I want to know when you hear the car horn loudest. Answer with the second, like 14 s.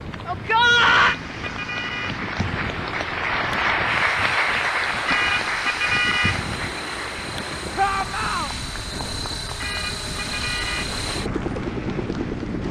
6 s.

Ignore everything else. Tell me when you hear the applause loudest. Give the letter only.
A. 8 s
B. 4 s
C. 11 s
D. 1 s
B.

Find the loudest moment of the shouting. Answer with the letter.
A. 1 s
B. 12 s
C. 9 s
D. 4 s
A.